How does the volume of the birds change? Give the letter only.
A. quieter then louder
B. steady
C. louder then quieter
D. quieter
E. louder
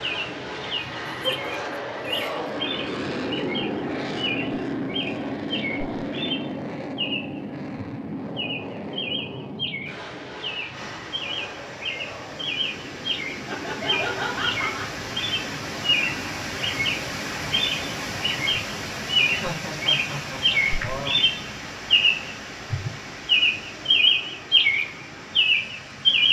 E.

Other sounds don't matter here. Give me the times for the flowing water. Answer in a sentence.
The flowing water can be heard from 10.7 to 26.2 s.